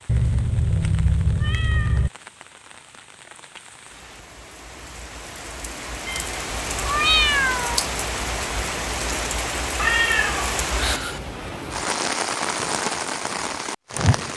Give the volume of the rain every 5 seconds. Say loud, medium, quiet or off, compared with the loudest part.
quiet, loud, loud.